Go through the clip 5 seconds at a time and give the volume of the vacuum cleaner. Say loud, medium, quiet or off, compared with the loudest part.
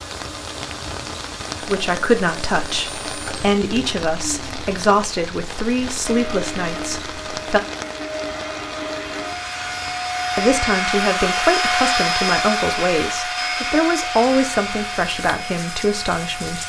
quiet, medium, loud, medium.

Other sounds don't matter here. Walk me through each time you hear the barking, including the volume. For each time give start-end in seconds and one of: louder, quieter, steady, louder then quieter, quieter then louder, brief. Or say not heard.
not heard.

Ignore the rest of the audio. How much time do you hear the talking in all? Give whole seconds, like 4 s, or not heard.
12 s.